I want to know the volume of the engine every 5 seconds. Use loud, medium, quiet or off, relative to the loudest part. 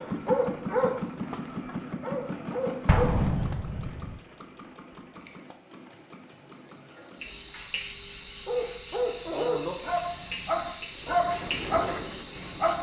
loud, quiet, loud.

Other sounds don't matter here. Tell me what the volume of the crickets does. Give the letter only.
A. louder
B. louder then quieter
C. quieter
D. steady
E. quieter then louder
A.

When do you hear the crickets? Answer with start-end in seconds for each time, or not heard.
0.0-12.7.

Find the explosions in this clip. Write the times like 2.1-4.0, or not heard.
2.9-4.2.